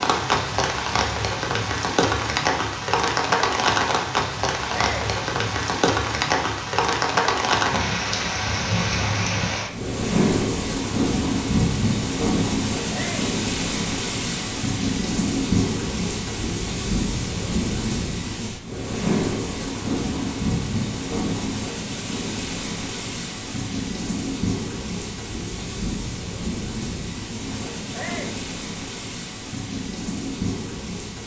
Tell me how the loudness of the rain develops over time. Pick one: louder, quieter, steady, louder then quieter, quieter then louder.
quieter.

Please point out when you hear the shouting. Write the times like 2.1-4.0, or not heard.
4.7-5.2, 12.9-13.3, 27.9-28.4.